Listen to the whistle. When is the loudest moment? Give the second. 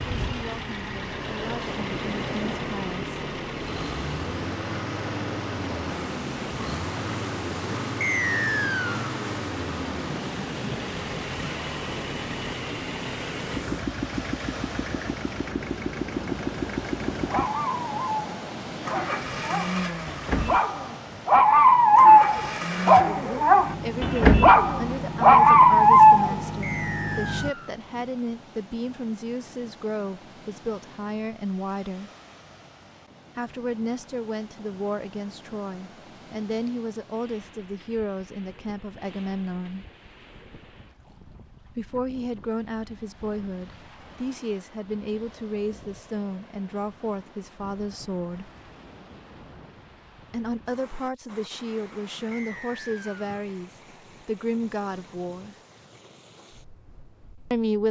8 s.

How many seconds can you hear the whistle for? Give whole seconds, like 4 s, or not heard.
3 s.